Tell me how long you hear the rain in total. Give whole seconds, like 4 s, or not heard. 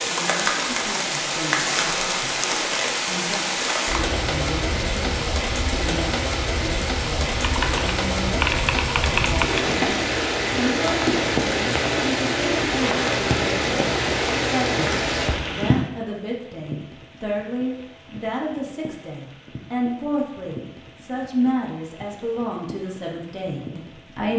24 s.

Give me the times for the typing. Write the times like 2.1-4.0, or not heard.
7.3-9.8.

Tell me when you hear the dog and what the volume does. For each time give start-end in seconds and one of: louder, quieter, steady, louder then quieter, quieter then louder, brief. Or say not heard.
not heard.